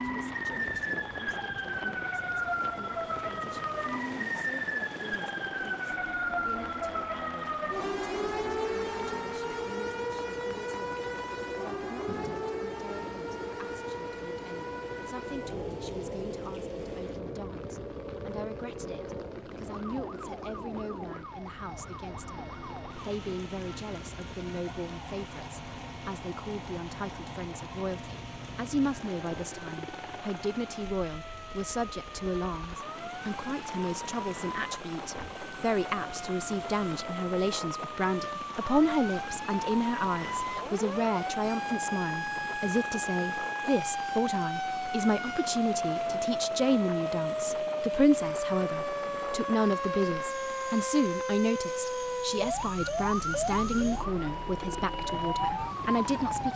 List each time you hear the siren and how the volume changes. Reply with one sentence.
The siren can be heard from 0.0 to 56.5 s, getting quieter then louder.